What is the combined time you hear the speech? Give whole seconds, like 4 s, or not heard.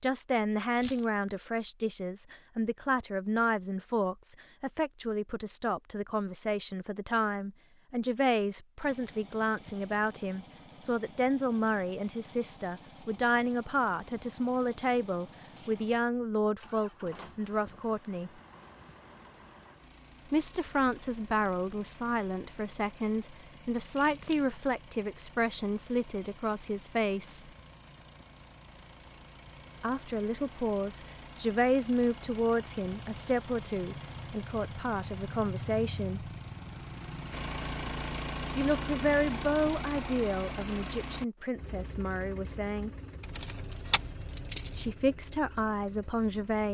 38 s.